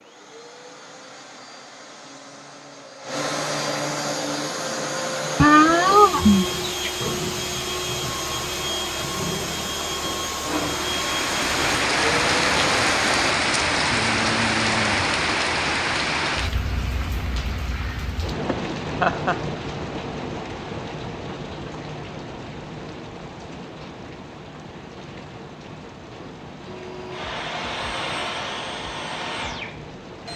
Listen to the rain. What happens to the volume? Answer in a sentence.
The volume of the rain goes down.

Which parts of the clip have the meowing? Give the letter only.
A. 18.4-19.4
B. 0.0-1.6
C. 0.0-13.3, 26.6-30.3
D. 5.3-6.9
D.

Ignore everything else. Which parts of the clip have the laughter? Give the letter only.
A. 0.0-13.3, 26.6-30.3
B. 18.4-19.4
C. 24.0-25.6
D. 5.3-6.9
B.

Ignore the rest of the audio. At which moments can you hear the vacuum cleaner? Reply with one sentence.
You can hear the vacuum cleaner from 0.0 to 13.3 s and from 26.6 to 30.3 s.